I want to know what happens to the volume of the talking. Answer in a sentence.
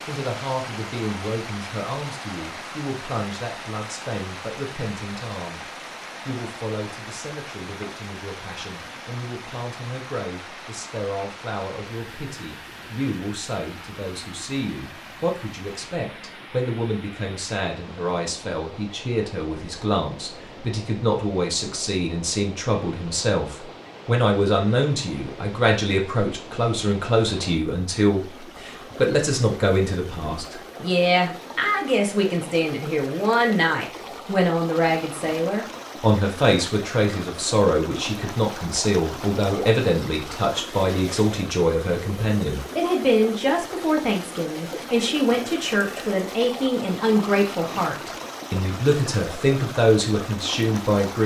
The volume of the talking goes up.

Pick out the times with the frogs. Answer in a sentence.
The frogs can't be heard in this clip.